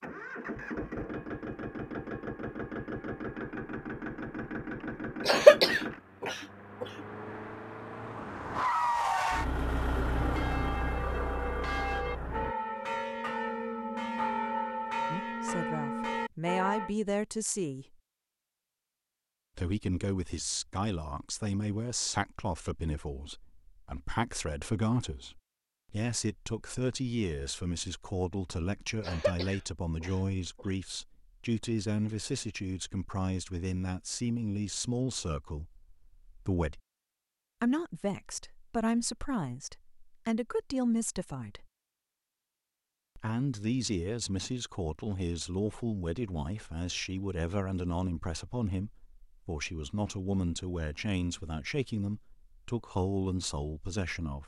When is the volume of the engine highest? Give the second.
9 s.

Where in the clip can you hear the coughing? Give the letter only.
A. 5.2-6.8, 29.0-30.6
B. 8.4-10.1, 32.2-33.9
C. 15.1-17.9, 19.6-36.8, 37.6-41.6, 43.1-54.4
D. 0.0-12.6
A.